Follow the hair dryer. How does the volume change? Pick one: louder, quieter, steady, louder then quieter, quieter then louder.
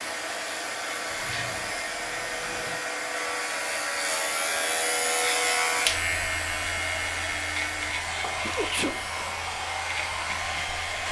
steady.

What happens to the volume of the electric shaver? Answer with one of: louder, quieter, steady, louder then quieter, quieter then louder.
louder then quieter.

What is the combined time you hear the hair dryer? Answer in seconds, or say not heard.
11 s.